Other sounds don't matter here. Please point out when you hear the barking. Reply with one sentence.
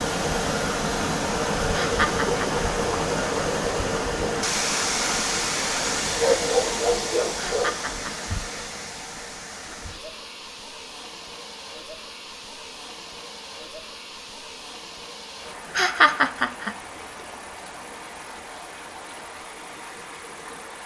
You can hear the barking from 6.0 to 7.8 s.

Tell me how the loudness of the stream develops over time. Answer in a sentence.
The loudness of the stream goes down.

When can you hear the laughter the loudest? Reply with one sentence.
The loudest moment of the laughter is at 16 seconds.